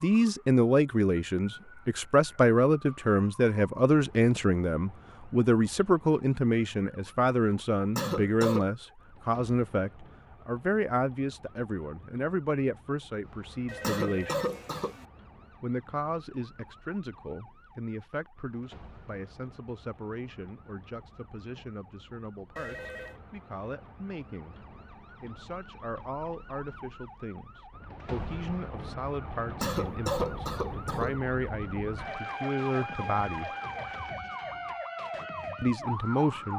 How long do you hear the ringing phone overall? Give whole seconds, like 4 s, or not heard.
2 s.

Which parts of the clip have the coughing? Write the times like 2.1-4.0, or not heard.
8.0-8.7, 13.8-14.9, 29.6-31.2.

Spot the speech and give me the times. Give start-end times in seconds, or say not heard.
0.0-14.4, 15.6-33.5, 35.6-36.5.